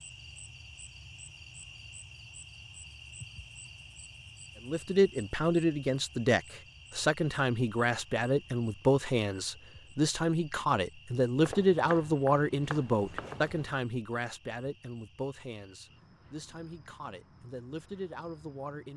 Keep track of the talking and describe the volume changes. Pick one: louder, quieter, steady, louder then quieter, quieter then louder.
quieter.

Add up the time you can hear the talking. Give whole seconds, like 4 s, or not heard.
14 s.